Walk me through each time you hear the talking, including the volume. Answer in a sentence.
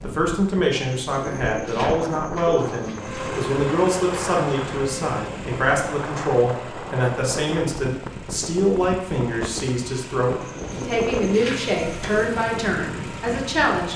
You can hear the talking from 0.0 to 13.9 s, at a steady volume.